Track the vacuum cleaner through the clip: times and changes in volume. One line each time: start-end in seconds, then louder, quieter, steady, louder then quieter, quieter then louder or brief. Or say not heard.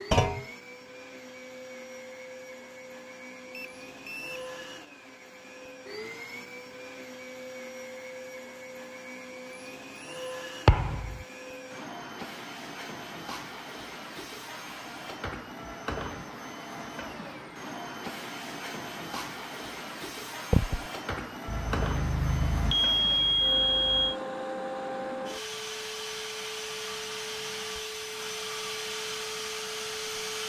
0.0-30.4 louder.